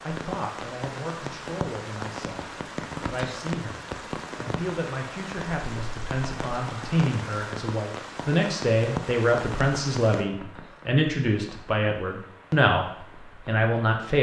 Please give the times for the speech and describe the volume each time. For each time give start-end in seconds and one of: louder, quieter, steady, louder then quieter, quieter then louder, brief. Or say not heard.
0.0-14.1 louder.